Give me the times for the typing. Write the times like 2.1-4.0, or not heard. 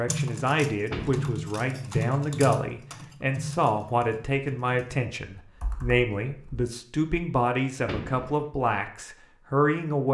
0.1-6.7.